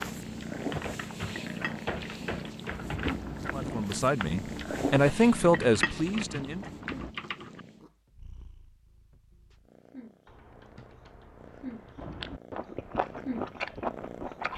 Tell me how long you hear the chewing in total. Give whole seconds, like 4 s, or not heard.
10 s.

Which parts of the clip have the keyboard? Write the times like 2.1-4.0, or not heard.
0.6-3.2, 5.6-7.6, 10.2-12.2.